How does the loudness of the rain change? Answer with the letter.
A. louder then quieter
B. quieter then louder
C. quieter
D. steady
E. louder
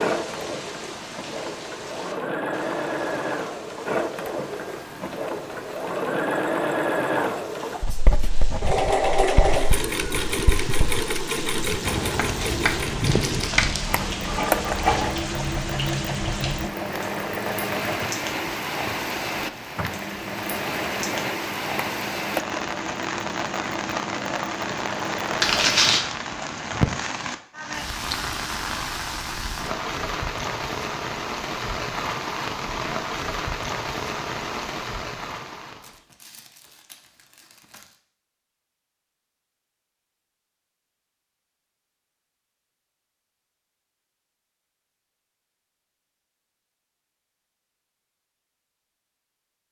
E.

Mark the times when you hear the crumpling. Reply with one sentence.
The crumpling can be heard from 13.0 to 14.0 s, from 25.4 to 26.1 s and from 35.8 to 38.0 s.